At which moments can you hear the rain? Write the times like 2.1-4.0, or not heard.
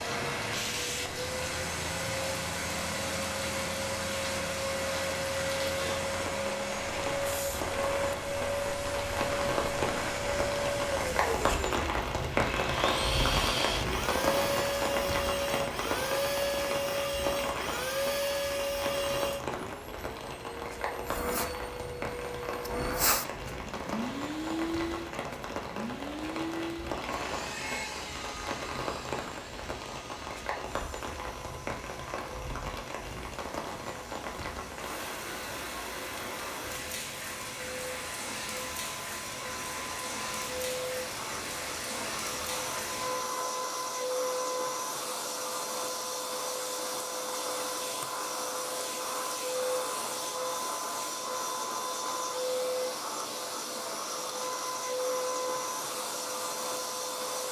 0.0-43.3.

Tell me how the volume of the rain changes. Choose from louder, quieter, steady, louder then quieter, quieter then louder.
louder then quieter.